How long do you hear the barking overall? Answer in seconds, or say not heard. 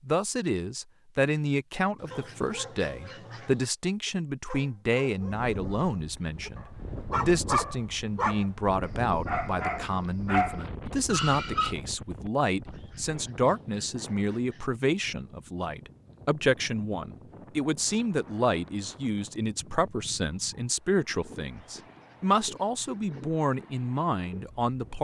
9 s.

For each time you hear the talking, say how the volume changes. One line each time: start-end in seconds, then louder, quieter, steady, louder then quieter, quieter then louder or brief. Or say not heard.
0.1-24.9 steady.